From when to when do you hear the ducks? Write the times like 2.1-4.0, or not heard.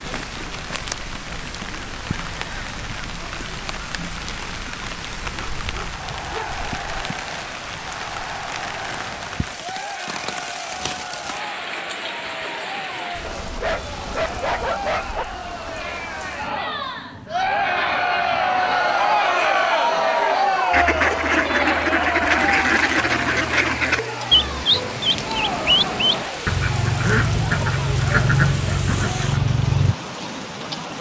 20.7-29.9.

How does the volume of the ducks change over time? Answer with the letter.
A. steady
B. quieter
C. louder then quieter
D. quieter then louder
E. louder
A.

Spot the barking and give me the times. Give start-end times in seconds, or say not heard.
5.2-6.7, 13.4-15.2, 23.0-25.1.